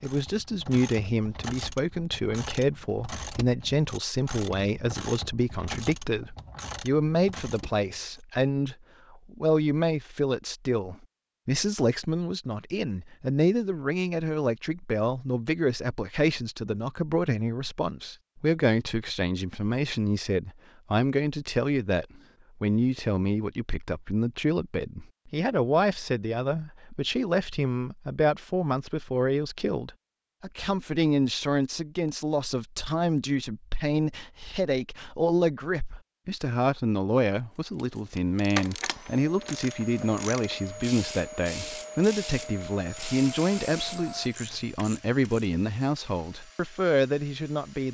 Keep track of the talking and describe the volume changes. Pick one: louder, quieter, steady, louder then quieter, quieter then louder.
steady.